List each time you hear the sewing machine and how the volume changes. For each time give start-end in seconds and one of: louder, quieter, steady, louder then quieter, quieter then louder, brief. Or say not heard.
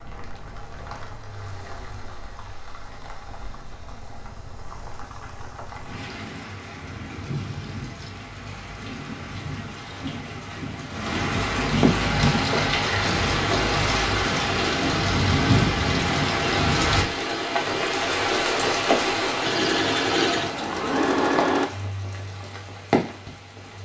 12.1-21.7 louder.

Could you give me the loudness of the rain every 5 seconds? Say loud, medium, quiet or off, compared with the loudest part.
quiet, quiet, loud, loud, medium.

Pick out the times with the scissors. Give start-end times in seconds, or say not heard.
not heard.